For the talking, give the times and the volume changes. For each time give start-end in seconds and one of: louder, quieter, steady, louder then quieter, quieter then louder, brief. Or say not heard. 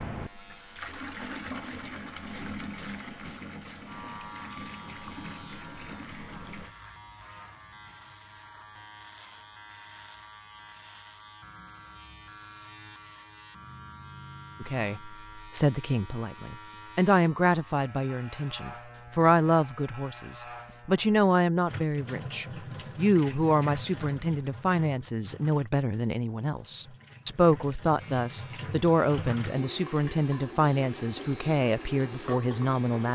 14.6-33.1 steady.